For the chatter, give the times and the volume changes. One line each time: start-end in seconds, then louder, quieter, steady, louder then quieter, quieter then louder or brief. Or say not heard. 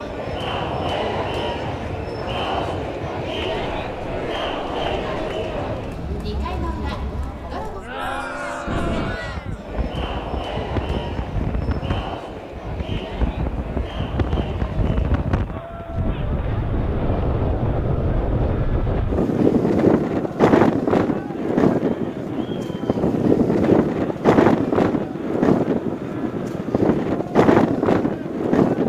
0.0-28.8 quieter.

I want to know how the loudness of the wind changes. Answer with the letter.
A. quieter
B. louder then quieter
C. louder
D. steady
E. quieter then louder
C.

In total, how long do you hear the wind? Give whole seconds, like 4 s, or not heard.
29 s.